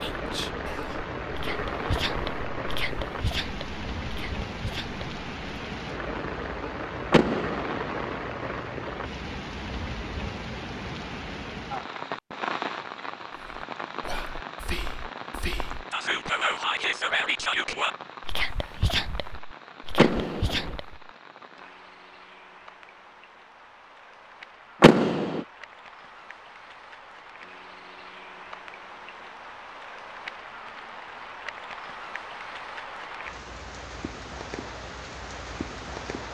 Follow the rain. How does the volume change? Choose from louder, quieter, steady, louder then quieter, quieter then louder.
quieter then louder.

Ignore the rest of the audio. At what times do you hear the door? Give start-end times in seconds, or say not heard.
7.1-7.9, 19.9-20.8, 24.8-25.4.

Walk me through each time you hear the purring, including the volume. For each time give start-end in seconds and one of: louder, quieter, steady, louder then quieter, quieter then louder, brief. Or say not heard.
not heard.